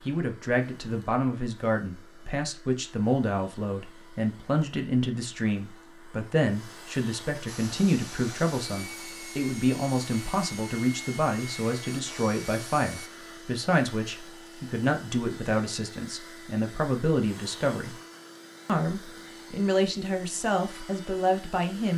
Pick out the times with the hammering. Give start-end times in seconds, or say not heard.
not heard.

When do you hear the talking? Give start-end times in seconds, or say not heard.
0.0-17.9, 18.6-21.9.